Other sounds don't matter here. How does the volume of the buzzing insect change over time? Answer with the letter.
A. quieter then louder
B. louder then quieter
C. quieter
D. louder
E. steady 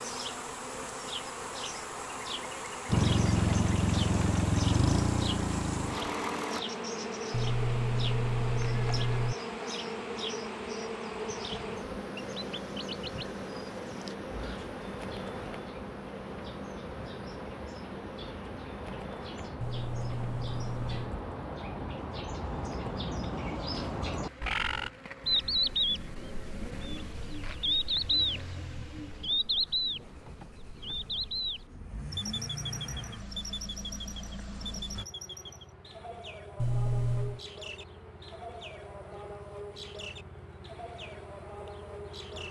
C.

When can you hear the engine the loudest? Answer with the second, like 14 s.
3 s.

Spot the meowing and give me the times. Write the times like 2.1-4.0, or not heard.
7.3-9.3, 19.6-21.1, 36.5-37.4.